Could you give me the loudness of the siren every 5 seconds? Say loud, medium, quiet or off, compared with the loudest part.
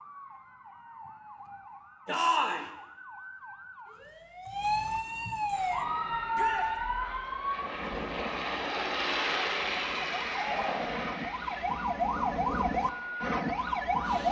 medium, loud, loud.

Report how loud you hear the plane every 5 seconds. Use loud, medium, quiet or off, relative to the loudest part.
off, loud, medium.